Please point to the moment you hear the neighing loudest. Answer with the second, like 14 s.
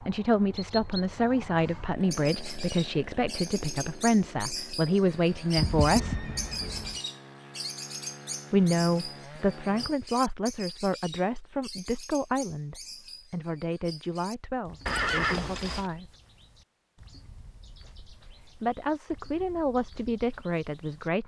15 s.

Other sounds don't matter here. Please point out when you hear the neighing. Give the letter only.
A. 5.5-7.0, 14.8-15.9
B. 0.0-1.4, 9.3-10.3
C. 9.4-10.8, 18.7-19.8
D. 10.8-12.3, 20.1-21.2
A.